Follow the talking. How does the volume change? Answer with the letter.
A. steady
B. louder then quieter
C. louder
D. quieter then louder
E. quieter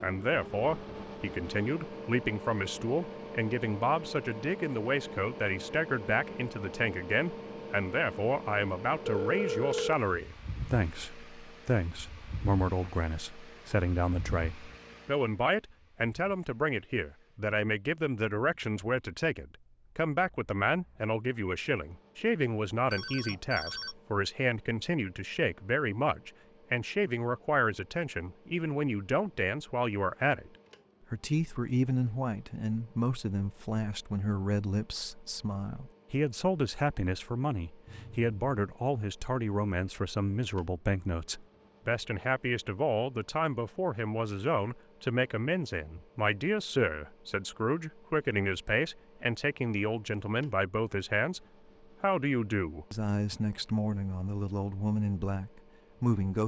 A.